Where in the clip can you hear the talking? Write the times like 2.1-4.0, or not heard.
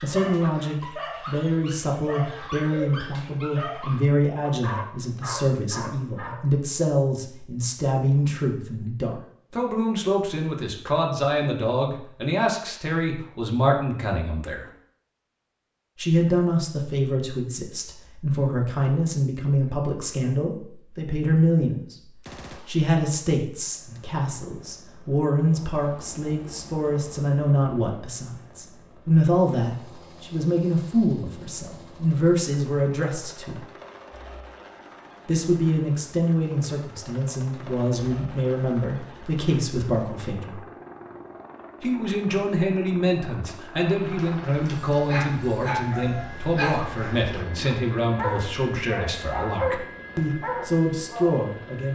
0.0-14.7, 15.9-21.9, 22.6-33.6, 35.2-40.6, 41.8-51.8.